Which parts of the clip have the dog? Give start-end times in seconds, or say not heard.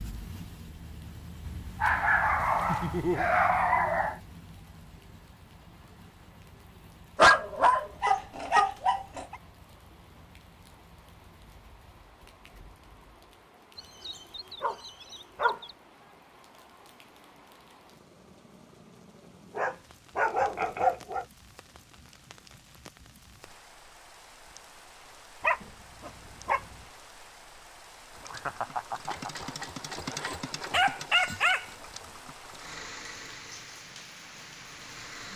1.4-4.2, 7.2-9.3, 13.8-15.7, 19.6-21.2, 25.4-26.8, 30.1-31.6.